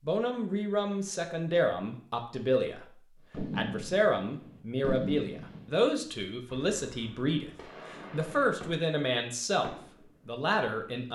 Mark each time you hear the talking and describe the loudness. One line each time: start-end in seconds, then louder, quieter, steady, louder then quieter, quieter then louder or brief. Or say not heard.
0.0-11.0 steady.